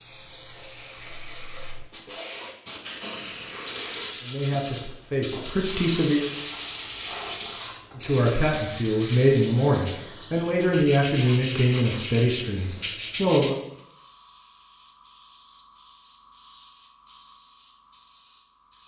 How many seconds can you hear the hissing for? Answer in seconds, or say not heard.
19 s.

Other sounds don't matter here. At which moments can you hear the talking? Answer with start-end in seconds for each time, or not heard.
4.2-6.3, 8.0-13.6.